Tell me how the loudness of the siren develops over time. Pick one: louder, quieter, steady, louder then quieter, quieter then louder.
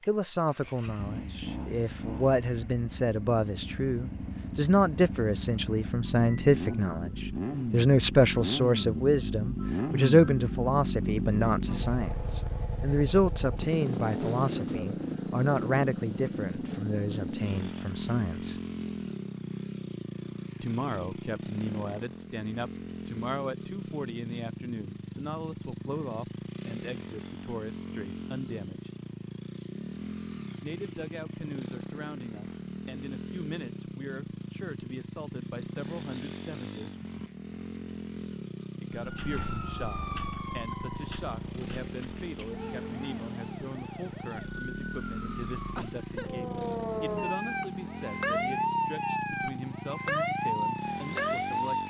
quieter then louder.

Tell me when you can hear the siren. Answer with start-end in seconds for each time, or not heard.
38.9-51.8.